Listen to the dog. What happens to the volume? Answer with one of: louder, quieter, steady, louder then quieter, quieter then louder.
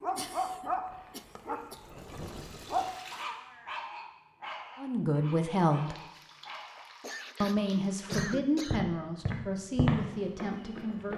quieter.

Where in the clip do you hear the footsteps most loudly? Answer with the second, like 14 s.
10 s.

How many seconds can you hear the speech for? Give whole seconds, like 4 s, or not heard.
5 s.